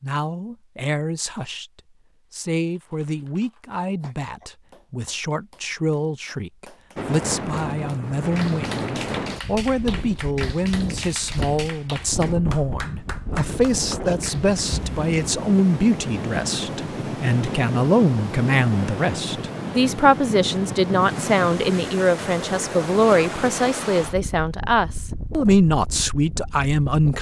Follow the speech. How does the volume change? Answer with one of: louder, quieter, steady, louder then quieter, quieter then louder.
louder.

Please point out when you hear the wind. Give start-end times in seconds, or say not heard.
7.0-27.1.